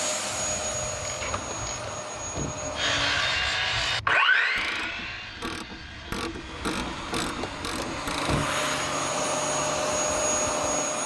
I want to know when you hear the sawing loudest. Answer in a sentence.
The loudest moment of the sawing is at 4 seconds.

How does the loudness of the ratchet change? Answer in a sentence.
The volume of the ratchet goes up.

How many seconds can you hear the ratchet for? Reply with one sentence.
You can hear the ratchet for 8 seconds altogether.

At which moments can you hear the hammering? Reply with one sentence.
You can't hear the hammering here.